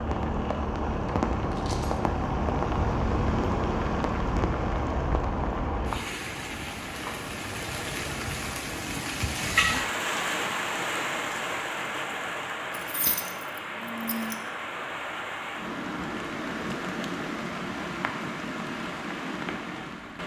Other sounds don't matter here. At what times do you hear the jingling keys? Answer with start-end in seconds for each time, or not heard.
1.1-2.0, 12.7-14.4.